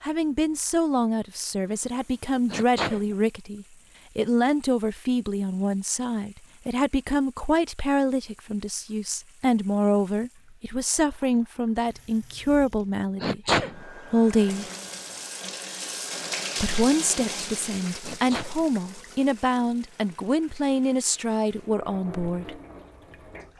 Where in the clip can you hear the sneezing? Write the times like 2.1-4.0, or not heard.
2.5-3.0, 13.2-13.8, 18.0-18.6.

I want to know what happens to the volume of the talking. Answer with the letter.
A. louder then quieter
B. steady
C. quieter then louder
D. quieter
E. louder
B.